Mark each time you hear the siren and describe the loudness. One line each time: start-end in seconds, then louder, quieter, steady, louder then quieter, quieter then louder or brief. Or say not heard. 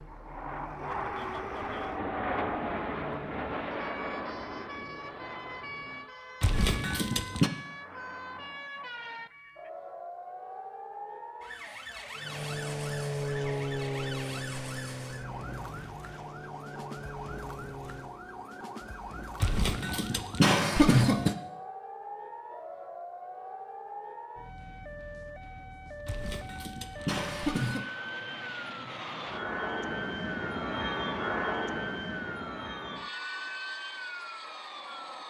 0.0-35.2 steady.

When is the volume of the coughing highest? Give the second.
21 s.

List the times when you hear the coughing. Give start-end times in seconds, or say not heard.
6.4-7.5, 19.4-21.4, 26.1-27.9.